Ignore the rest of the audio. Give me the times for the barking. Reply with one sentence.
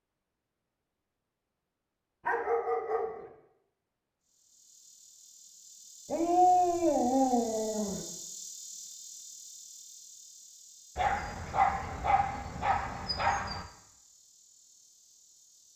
You can hear the barking from 2.2 to 3.3 s, from 6.0 to 8.1 s and from 10.9 to 13.7 s.